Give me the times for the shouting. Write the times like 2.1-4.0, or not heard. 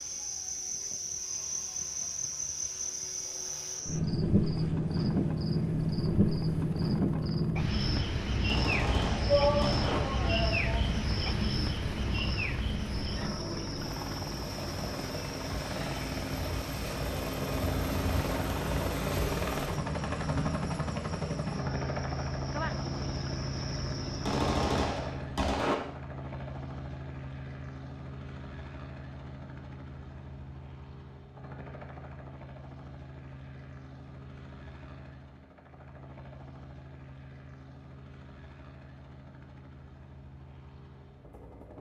9.2-10.8.